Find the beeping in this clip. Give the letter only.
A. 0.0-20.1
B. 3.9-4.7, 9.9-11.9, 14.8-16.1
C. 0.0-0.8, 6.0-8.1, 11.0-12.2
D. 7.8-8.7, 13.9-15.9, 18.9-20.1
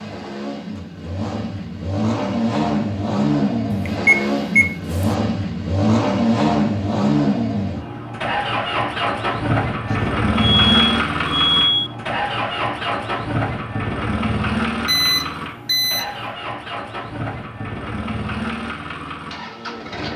B.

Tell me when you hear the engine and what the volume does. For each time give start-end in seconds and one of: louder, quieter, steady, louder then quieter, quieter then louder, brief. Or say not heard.
0.0-20.1 quieter.